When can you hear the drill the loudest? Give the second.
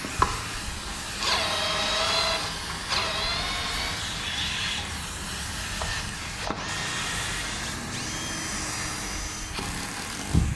2 s.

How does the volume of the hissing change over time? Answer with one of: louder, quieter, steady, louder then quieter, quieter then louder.
steady.